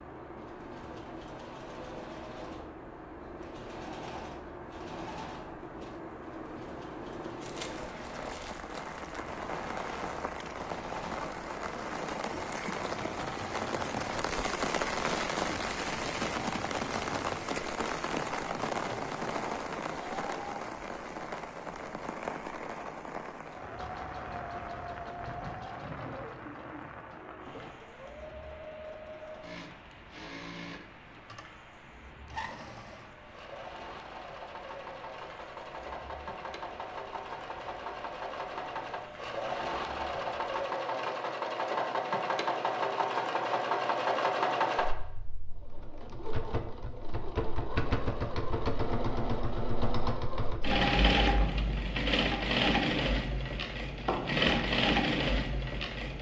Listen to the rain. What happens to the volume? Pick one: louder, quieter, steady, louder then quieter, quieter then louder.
louder then quieter.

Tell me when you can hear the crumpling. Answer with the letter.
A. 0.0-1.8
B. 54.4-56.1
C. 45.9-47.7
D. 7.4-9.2
D.